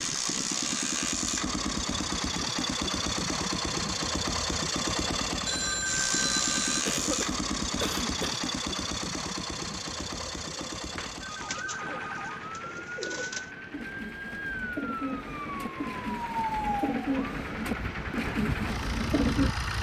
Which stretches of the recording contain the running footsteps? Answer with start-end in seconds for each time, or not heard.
not heard.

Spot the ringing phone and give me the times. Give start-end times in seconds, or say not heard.
5.5-6.8, 10.8-12.3.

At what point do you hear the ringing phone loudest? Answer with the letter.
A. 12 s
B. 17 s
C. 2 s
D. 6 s
D.